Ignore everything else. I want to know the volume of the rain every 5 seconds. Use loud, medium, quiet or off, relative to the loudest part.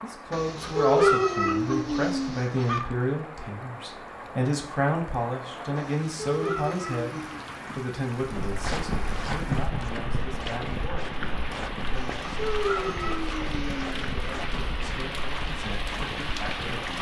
medium, medium, loud, loud.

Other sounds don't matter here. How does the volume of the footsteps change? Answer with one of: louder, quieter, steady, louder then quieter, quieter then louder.
quieter.